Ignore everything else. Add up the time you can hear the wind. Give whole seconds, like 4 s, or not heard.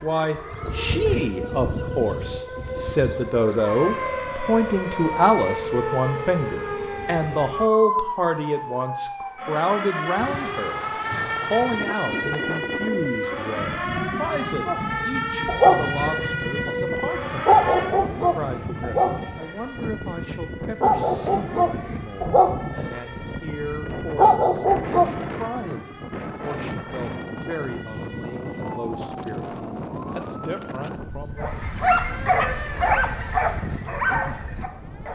25 s.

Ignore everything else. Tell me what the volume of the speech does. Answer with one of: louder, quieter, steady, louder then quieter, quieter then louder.
quieter.